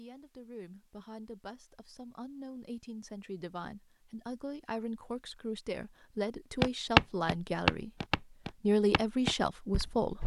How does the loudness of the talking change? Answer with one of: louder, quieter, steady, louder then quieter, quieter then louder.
louder.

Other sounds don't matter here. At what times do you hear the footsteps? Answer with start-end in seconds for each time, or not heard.
6.6-10.2.